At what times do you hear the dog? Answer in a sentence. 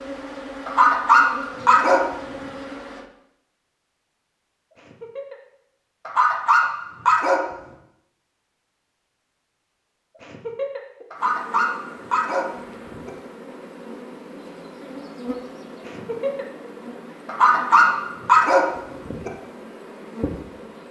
The dog can be heard from 0.7 to 2.0 s, from 6.0 to 7.4 s, from 11.1 to 13.1 s and from 17.2 to 19.3 s.